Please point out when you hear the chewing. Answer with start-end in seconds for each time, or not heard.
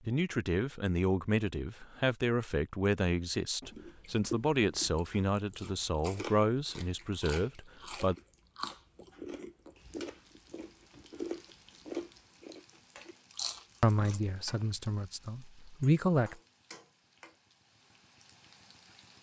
3.6-14.2.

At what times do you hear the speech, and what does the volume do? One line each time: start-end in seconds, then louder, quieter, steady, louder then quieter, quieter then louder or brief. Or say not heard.
0.1-8.2 steady
13.8-16.4 brief.